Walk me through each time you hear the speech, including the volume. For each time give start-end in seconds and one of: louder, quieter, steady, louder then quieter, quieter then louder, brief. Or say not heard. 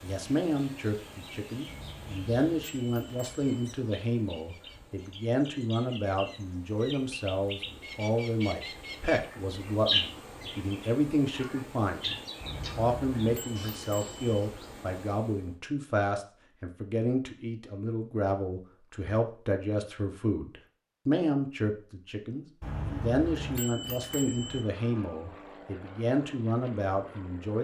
0.0-27.5 steady.